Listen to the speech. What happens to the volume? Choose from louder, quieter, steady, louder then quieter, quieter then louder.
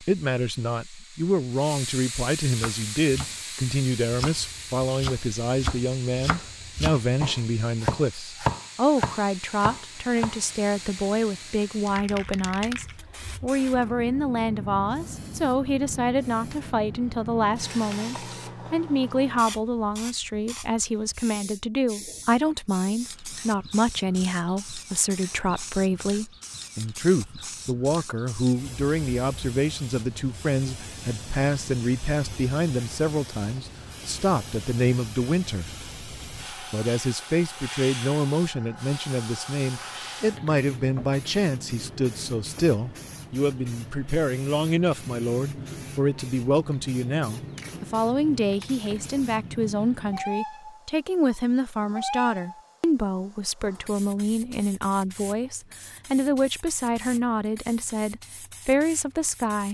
steady.